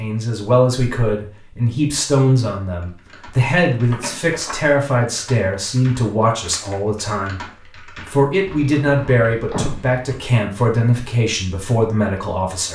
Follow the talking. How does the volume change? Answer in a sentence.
The volume of the talking stays about the same.